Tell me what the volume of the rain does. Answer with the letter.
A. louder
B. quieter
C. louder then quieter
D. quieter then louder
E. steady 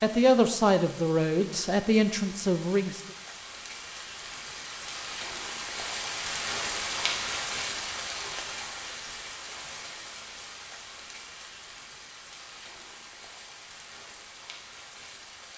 C.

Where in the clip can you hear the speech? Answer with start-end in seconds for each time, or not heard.
0.0-3.0.